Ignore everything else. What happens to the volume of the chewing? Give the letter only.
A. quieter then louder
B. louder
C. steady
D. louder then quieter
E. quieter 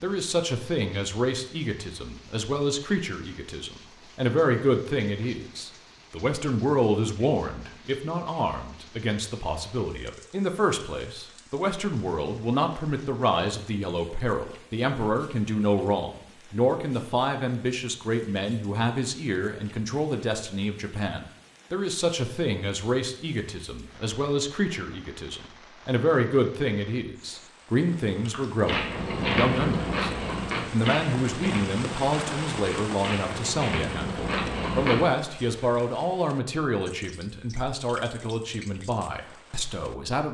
A.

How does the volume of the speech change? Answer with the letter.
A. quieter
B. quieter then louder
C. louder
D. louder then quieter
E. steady
E.